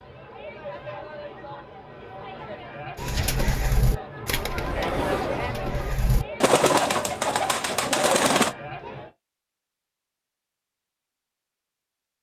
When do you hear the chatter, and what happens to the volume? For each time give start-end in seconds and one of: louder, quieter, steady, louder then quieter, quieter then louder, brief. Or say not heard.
0.0-9.1 louder then quieter.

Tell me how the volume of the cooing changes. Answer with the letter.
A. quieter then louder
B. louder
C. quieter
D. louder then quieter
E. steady
A.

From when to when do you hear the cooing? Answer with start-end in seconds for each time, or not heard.
3.0-8.6.